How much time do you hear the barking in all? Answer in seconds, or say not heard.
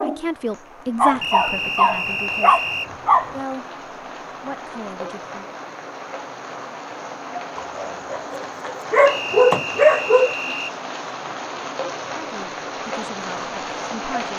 5 s.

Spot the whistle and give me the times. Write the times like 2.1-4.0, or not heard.
1.2-2.9, 9.1-10.8.